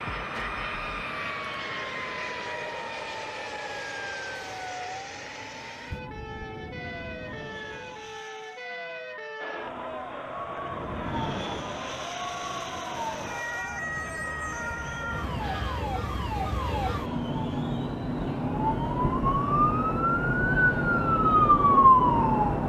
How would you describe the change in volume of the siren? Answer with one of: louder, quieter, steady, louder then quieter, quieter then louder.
louder.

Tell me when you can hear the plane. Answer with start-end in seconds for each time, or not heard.
0.0-8.7, 10.6-15.9.